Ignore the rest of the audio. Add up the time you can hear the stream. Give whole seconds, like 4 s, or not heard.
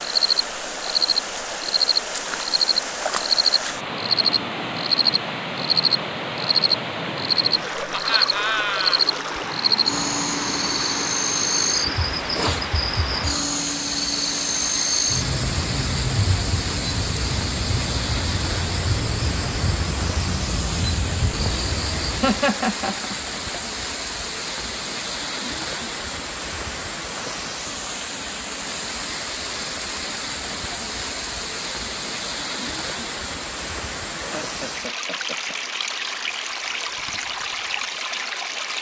39 s.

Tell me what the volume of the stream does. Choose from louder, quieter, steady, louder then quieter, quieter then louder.
steady.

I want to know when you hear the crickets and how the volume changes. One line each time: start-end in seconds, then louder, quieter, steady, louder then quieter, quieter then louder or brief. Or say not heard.
0.0-22.5 quieter.